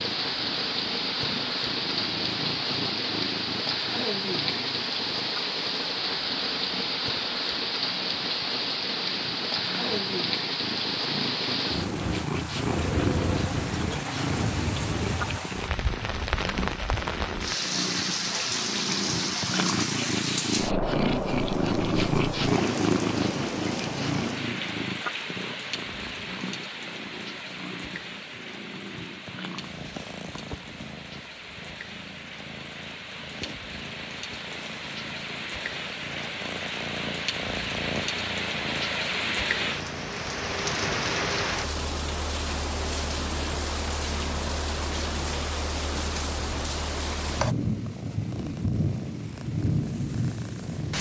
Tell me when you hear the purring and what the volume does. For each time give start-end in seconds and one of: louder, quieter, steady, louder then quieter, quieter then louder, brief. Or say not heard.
0.0-50.9 louder then quieter.